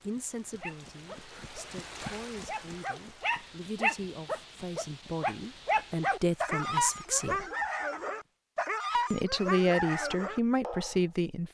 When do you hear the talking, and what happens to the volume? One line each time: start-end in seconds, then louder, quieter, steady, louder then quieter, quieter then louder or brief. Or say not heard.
0.0-7.5 louder
9.1-11.4 brief.